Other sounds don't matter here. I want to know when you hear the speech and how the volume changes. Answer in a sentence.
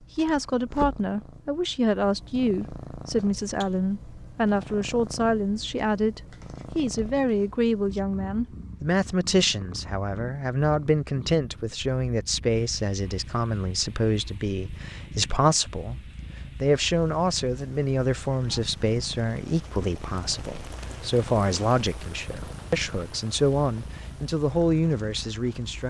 The speech can be heard from 0.1 to 16.0 s, at a steady volume; and from 16.6 to 25.8 s, at a steady volume.